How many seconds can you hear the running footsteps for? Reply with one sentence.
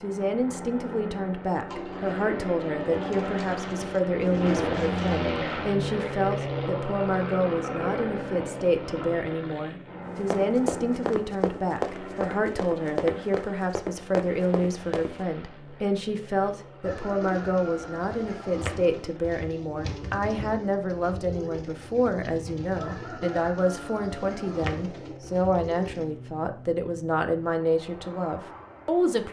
The running footsteps can be heard for 5 seconds in total.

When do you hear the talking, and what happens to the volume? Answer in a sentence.
You can hear the talking from 0.0 to 29.2 s, at a steady volume.